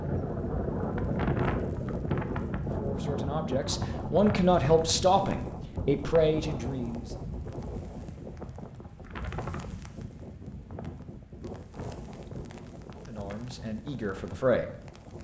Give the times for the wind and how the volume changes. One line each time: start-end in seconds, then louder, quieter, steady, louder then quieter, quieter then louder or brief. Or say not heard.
0.0-15.1 quieter.